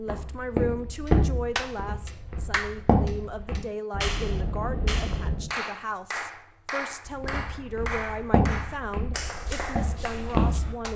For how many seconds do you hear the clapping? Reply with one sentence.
You can hear the clapping for 10 seconds altogether.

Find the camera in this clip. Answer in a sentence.
The camera can be heard from 3.9 to 5.5 s.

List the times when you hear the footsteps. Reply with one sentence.
You can hear the footsteps from 0.0 to 3.6 s and from 7.0 to 10.9 s.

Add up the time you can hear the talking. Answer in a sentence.
The talking can be heard for 11 seconds in total.